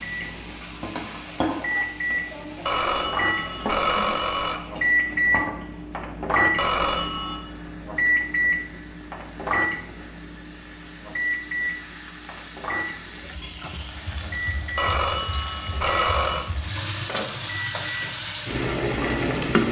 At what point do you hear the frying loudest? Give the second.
19 s.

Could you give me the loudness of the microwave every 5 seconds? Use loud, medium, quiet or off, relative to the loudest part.
loud, loud, medium, medium.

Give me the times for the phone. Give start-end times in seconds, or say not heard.
2.6-4.7, 6.5-7.5, 14.8-16.5.